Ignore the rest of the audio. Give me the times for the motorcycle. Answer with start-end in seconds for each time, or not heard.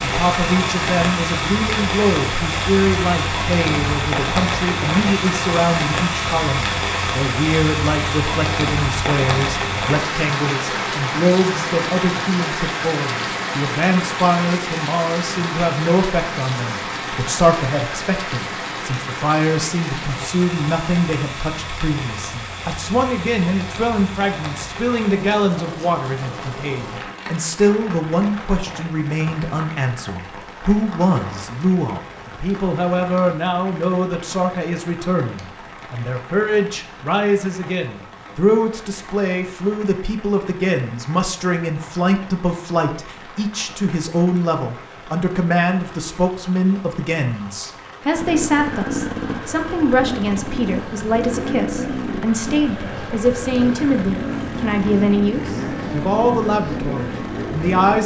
48.1-58.0.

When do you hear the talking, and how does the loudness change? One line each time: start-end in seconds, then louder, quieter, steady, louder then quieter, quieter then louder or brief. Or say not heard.
0.0-58.0 steady.